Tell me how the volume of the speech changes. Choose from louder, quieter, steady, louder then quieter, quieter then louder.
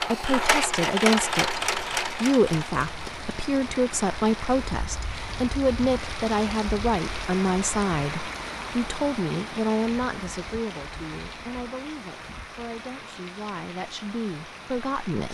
quieter.